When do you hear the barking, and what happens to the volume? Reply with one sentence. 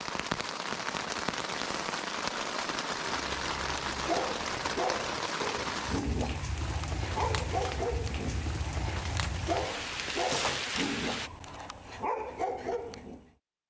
The barking can be heard from 3.4 to 13.3 s, at a steady volume.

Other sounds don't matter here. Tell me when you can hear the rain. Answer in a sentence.
The rain can be heard from 0.0 to 11.3 s.